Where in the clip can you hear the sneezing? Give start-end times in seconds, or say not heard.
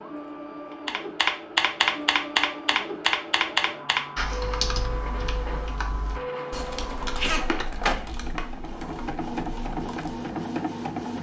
7.2-7.7.